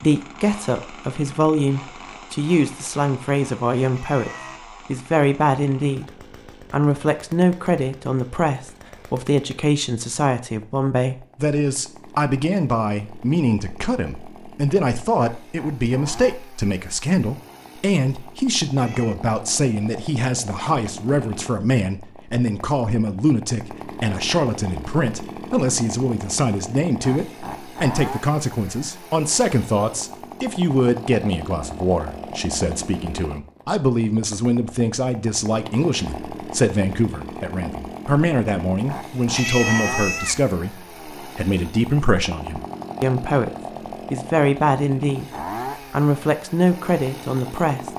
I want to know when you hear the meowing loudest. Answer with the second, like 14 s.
40 s.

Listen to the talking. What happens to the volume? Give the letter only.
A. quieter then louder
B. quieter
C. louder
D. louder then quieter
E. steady
E.